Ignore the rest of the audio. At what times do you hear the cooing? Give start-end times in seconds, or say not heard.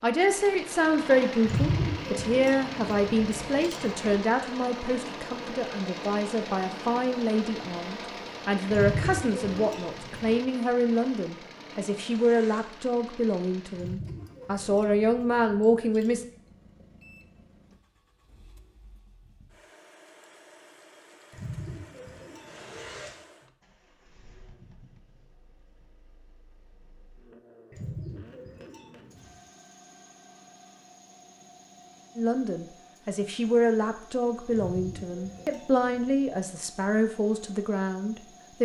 1.4-4.2, 8.7-10.4, 13.8-16.2, 21.3-23.1, 27.7-29.4, 34.5-36.0.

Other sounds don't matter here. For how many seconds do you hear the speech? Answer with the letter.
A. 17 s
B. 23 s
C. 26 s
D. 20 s
B.